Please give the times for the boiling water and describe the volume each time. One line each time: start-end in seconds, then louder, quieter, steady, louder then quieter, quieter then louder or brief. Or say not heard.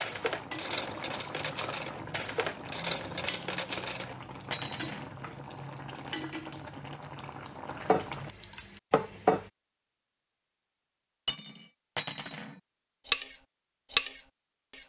0.0-8.3 steady.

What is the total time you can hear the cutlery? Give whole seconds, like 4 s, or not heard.
10 s.